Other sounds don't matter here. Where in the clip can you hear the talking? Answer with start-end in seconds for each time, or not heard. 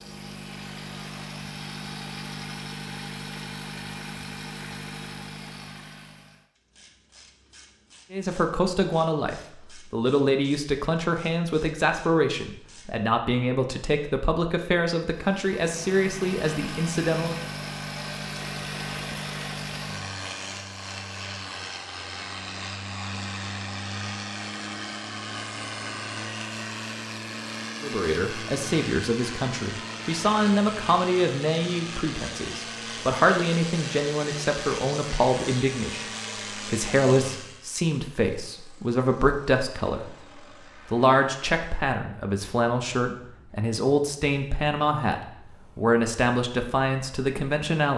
8.1-17.4, 27.8-40.1, 40.9-47.9.